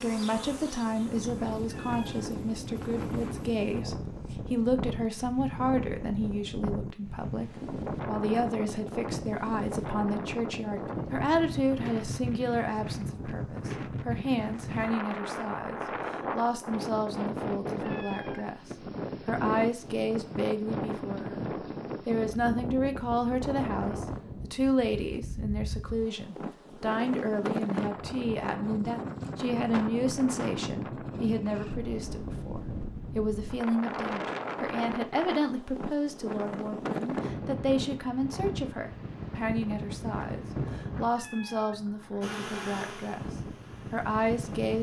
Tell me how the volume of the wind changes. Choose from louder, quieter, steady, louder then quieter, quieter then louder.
steady.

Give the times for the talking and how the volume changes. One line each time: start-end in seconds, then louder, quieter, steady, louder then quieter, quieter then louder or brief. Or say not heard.
0.0-21.4 steady
22.1-44.7 steady.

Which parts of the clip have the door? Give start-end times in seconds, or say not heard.
not heard.